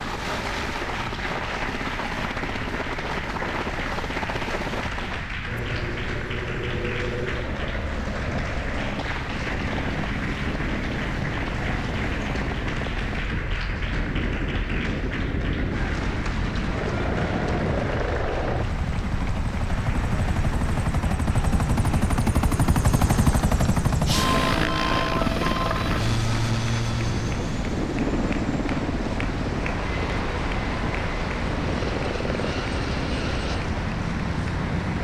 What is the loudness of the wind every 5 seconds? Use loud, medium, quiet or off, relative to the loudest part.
medium, medium, loud, loud, loud, loud, loud.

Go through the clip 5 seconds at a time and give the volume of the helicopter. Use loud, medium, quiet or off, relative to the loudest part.
medium, medium, medium, medium, loud, loud, medium.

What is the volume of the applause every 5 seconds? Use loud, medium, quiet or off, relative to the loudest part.
loud, loud, loud, loud, medium, loud, loud.